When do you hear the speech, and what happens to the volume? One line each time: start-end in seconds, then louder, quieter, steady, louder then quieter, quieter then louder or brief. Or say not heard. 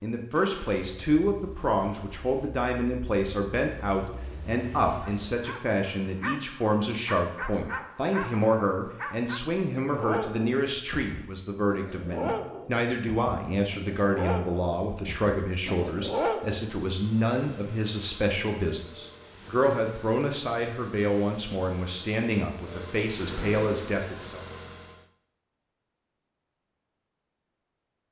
0.0-24.4 steady.